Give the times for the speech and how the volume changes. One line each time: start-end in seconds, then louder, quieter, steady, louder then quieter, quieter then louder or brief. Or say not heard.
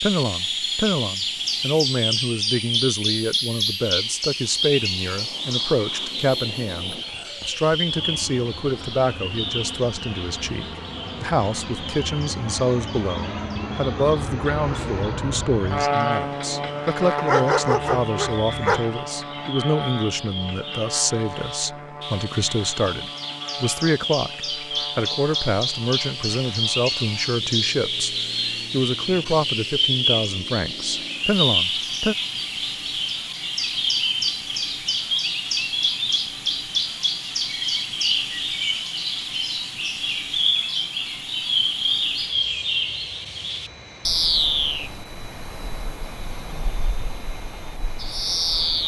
0.0-32.1 steady.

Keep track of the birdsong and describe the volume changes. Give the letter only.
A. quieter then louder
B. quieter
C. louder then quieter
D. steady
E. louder
A.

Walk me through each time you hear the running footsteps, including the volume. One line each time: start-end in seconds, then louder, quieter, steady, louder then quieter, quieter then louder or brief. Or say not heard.
not heard.